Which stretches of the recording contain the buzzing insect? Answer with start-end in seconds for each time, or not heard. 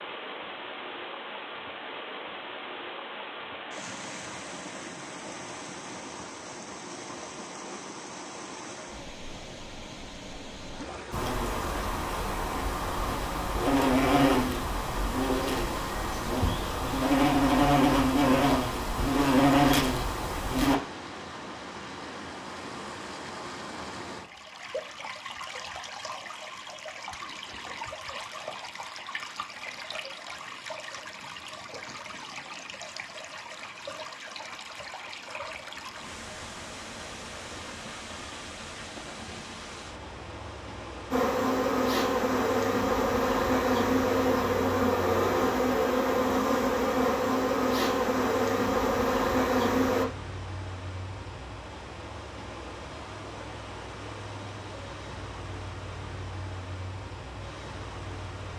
11.1-20.8, 41.1-50.0.